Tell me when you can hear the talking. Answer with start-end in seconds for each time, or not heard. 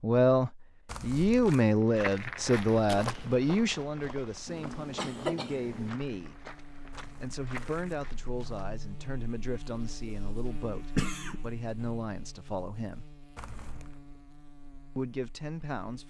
0.0-6.5, 7.2-13.1, 14.9-16.0.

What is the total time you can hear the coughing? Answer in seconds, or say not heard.
2 s.